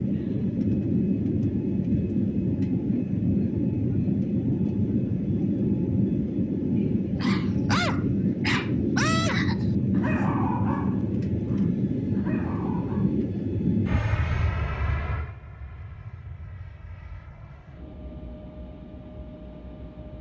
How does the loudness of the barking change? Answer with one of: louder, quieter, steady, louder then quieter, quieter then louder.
quieter.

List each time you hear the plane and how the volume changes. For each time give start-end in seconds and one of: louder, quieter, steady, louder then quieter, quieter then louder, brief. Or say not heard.
0.0-20.1 quieter.